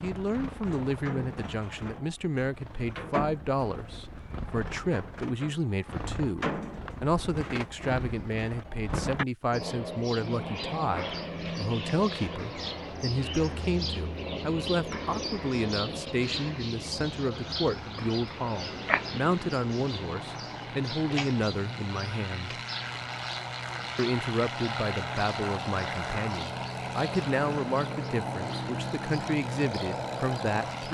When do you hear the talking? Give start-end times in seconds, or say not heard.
0.0-22.6, 23.9-30.8.